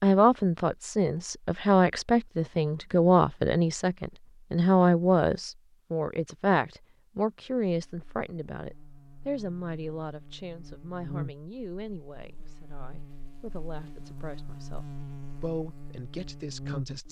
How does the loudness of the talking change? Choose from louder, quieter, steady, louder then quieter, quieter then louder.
quieter.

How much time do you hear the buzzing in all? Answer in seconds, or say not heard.
9 s.